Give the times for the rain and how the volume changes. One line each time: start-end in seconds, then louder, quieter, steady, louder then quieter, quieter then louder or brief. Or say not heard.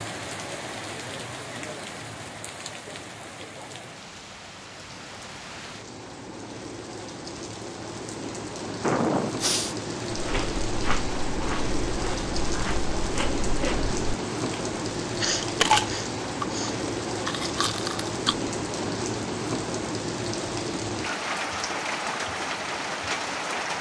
0.0-23.7 louder.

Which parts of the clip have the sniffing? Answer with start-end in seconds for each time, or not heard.
8.8-9.8, 15.2-16.8.